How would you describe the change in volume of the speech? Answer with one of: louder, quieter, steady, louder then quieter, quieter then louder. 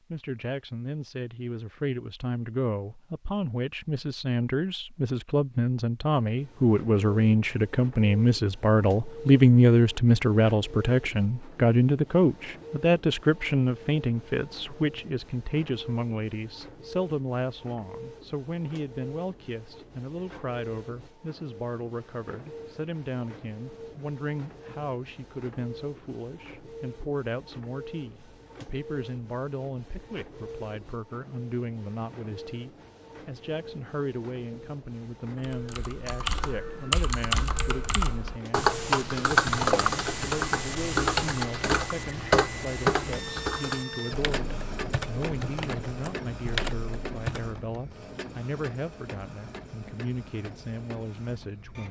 quieter.